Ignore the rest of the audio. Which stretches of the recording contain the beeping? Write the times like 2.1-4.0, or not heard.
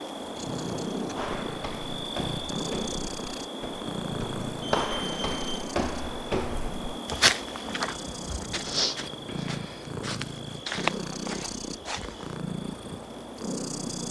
4.6-5.7.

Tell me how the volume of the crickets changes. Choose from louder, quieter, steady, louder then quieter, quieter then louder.
quieter.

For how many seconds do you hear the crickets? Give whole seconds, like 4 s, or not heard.
14 s.